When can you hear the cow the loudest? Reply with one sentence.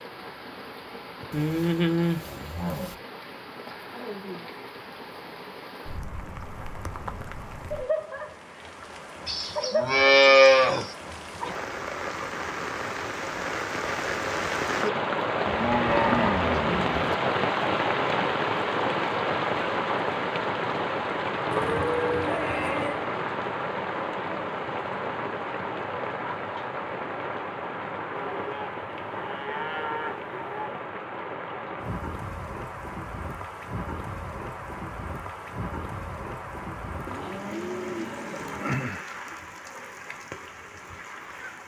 The loudest moment of the cow is at 10 seconds.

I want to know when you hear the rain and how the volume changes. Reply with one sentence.
You can hear the rain from 0.0 to 41.6 s, getting louder then quieter.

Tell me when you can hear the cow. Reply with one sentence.
You can hear the cow from 1.3 to 3.0 s, from 9.2 to 10.8 s, from 15.4 to 17.1 s, from 21.5 to 23.1 s, from 28.1 to 30.8 s and from 37.0 to 38.9 s.